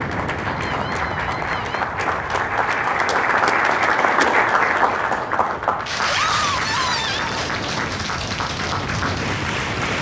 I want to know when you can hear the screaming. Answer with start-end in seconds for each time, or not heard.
0.4-1.9, 6.0-7.3.